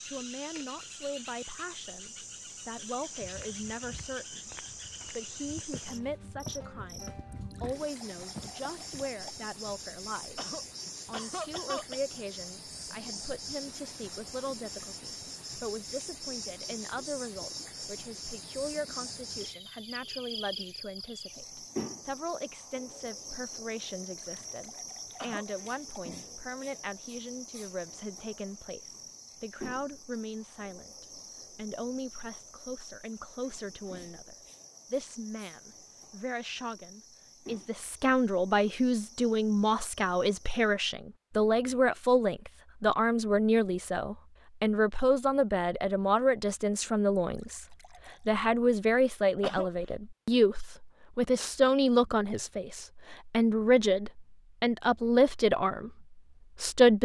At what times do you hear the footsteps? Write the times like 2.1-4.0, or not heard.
3.2-9.1.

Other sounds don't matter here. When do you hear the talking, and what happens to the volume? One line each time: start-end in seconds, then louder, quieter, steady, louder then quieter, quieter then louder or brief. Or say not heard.
0.1-56.9 louder.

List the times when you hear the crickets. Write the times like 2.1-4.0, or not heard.
0.0-40.8.